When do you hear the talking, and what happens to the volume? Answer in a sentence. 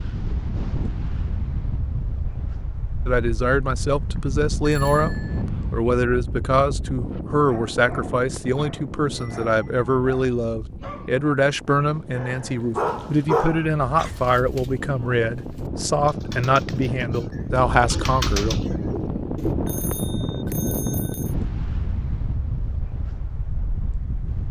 The talking can be heard from 3.0 to 18.6 s, at a steady volume.